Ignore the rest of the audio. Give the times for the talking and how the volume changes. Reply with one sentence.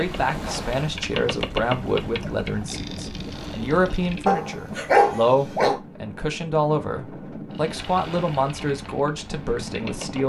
The talking can be heard from 0.0 to 10.2 s, at a steady volume.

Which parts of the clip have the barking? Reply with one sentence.
You can hear the barking from 4.2 to 5.8 s.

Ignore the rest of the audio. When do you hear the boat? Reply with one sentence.
You can hear the boat from 0.0 to 4.3 s and from 7.5 to 10.2 s.